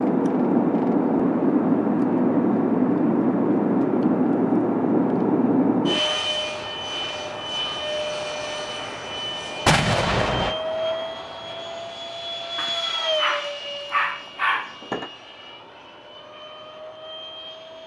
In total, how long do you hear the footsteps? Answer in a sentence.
You can't hear the footsteps here.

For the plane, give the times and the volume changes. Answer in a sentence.
The plane can be heard from 0.0 to 17.8 s, getting quieter.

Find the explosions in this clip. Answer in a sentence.
The explosions can be heard from 9.7 to 10.6 s.